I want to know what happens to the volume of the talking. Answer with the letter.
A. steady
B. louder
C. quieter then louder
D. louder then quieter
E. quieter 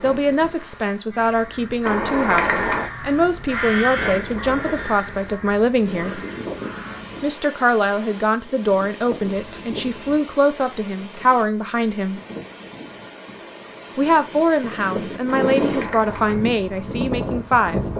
A.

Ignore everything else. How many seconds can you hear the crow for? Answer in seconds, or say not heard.
6 s.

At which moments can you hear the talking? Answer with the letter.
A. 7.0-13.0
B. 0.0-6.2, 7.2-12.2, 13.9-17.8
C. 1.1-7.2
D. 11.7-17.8
B.